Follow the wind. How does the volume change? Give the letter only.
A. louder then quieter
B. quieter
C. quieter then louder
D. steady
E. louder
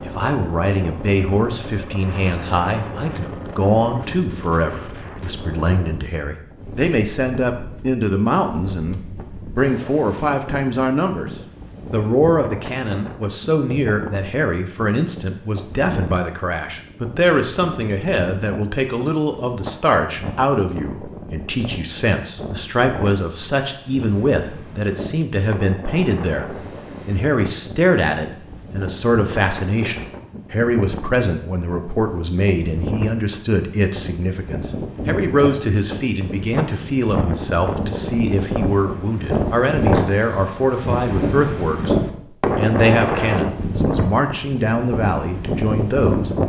E.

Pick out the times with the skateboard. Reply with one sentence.
You can't hear the skateboard here.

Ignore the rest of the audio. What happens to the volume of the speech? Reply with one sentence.
The volume of the speech stays about the same.